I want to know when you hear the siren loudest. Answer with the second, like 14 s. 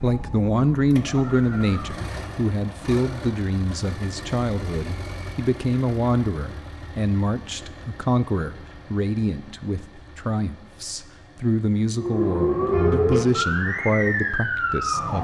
13 s.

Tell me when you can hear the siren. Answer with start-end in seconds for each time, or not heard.
0.0-2.1, 11.9-15.2.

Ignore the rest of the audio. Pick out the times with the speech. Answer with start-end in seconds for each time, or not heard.
0.0-15.2.